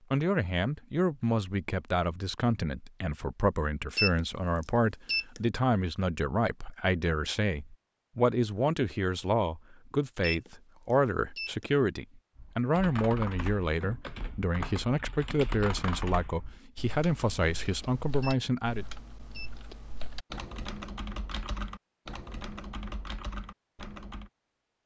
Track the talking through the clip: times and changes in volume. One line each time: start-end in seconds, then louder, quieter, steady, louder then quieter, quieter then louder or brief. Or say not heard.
0.1-18.9 steady.